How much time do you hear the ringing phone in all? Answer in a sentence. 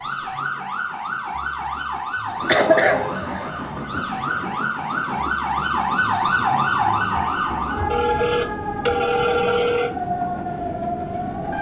You can hear the ringing phone for 3 seconds altogether.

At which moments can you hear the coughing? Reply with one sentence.
The coughing can be heard from 2.5 to 3.5 s.